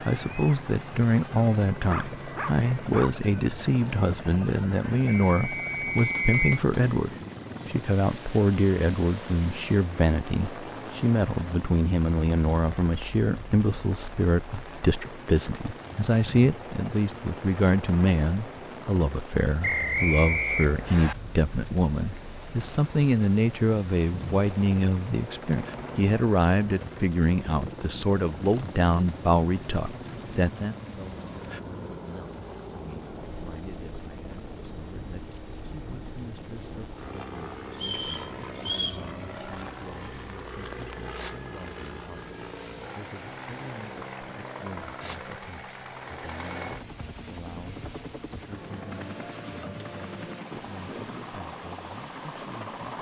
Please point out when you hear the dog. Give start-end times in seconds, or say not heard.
1.9-3.2.